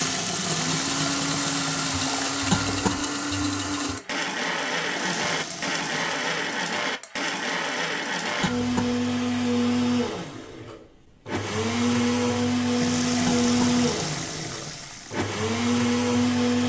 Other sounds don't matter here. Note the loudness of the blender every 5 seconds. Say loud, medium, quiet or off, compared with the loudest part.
medium, loud, loud, loud.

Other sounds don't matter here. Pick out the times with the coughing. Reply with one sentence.
The coughing can be heard from 2.5 to 3.0 s, from 8.4 to 8.9 s and from 13.2 to 13.8 s.